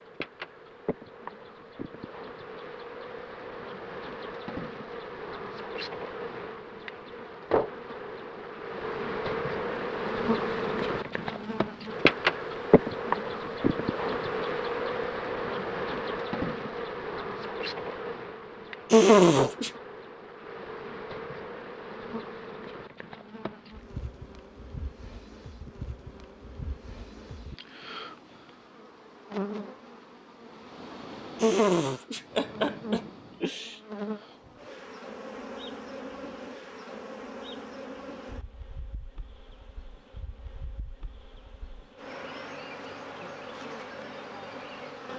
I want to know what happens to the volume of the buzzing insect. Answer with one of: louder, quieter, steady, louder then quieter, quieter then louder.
louder then quieter.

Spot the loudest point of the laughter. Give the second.
19 s.